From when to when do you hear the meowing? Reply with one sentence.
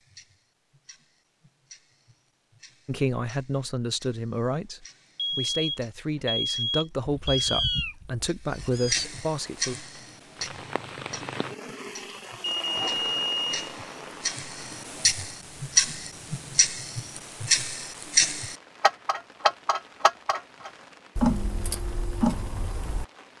The meowing can be heard from 7.2 to 9.1 s.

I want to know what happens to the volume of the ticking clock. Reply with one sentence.
The loudness of the ticking clock goes up.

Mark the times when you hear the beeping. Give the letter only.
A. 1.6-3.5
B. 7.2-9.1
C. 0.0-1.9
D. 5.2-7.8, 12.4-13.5
D.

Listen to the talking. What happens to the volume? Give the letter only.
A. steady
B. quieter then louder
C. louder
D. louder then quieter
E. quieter
A.